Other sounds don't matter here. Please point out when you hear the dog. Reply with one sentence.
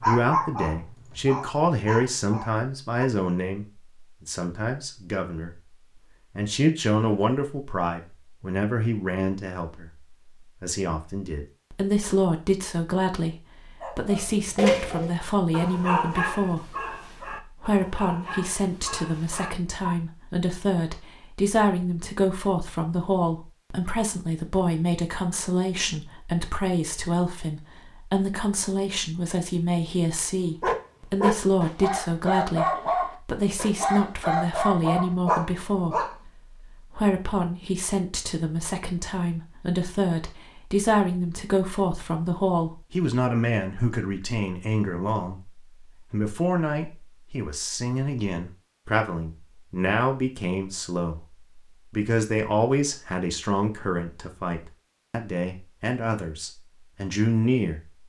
The dog can be heard from 0.0 to 3.1 s, from 13.8 to 19.9 s and from 30.6 to 36.1 s.